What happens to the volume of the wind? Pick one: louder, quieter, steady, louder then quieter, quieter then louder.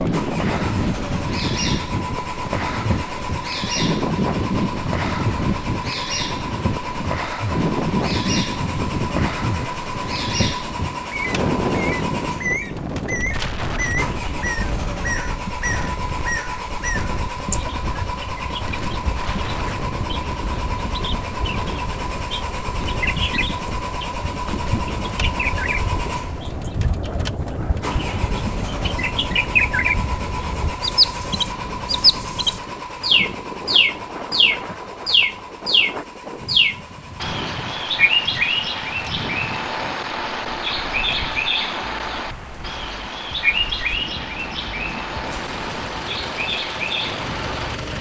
quieter.